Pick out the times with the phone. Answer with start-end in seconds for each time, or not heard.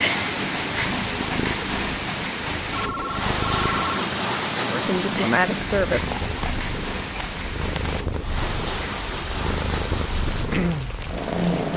2.7-4.0, 6.1-8.0.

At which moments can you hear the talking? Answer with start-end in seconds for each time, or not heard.
4.7-6.2.